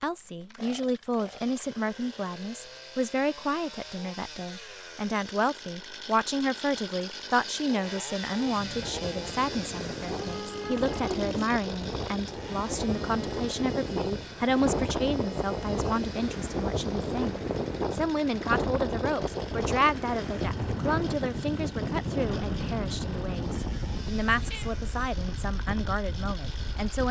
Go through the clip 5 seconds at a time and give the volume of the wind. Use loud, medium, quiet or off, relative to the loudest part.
off, medium, loud, loud, loud, medium.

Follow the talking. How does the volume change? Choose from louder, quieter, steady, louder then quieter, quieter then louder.
steady.